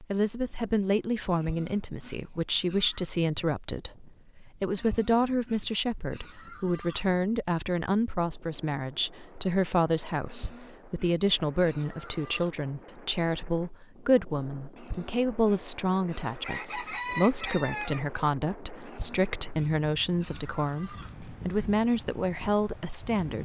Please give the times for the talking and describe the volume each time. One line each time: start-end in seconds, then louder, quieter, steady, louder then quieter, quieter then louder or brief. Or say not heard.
0.0-23.4 steady.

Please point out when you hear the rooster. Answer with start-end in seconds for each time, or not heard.
16.4-18.0.